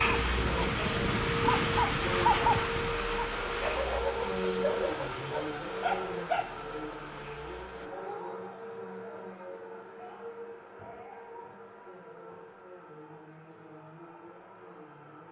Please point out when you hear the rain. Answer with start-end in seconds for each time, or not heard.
0.0-7.9.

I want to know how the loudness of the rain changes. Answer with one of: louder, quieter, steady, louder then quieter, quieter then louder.
quieter.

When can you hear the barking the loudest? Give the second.
2 s.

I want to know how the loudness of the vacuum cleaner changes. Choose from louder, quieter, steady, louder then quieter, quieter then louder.
quieter.